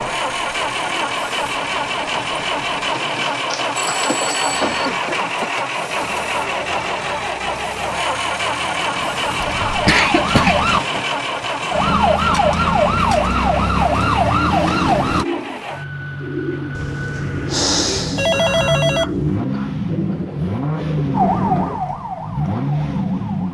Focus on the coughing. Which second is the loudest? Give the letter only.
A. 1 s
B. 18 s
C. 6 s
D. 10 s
D.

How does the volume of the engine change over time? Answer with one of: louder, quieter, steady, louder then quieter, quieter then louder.
quieter then louder.